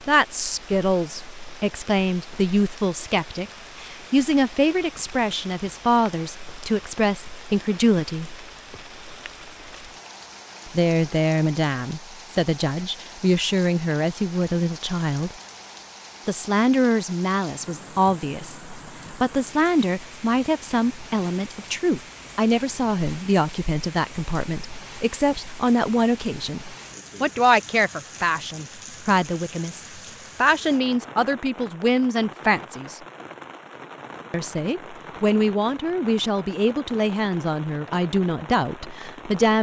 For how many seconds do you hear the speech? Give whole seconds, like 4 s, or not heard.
35 s.